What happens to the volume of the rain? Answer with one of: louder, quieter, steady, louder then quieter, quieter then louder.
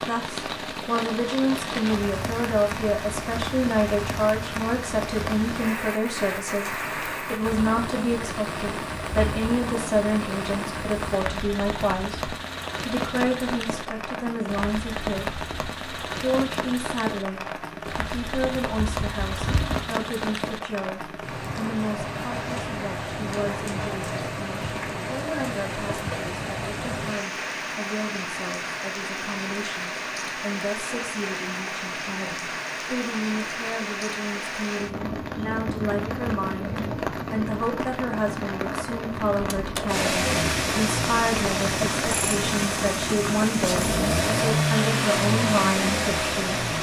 steady.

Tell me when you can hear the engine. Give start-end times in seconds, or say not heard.
39.9-46.7.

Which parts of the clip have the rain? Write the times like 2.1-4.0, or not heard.
0.0-46.7.